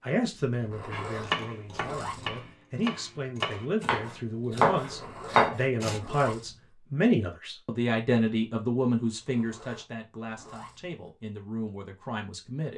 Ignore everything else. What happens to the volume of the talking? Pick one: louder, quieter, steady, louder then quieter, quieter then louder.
louder then quieter.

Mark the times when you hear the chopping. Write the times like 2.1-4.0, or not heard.
0.9-6.0.